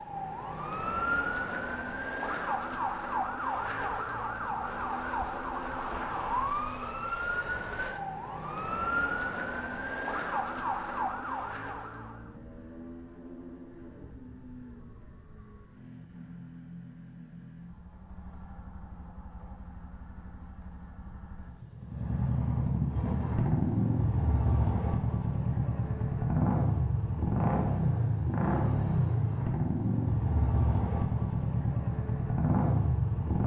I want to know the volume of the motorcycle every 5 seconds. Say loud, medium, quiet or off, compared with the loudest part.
quiet, quiet, quiet, quiet, loud, loud, loud.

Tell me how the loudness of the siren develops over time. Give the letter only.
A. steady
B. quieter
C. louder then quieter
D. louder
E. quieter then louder
A.